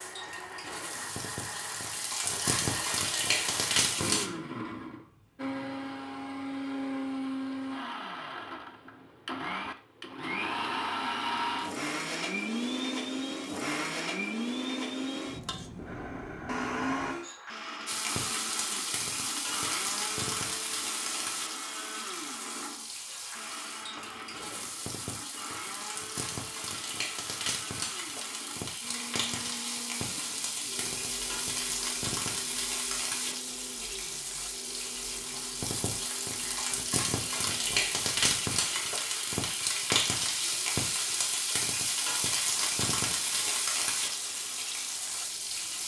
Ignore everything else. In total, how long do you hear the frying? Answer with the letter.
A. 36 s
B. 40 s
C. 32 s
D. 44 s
C.